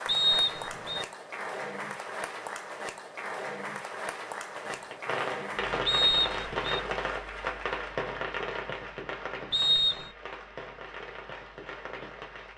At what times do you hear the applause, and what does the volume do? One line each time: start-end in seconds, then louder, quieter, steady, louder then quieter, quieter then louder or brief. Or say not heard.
0.0-12.5 quieter.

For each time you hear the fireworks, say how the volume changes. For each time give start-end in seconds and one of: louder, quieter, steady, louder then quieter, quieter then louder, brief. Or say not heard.
4.5-12.5 quieter.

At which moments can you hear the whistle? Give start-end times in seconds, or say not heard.
0.1-1.1, 5.8-6.8, 9.5-10.1.